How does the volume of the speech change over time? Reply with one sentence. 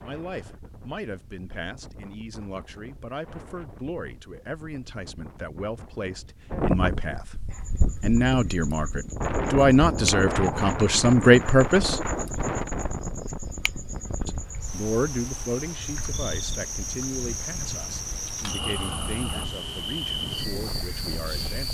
The loudness of the speech goes up, then down.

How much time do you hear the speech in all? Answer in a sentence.
You can hear the speech for 19 seconds altogether.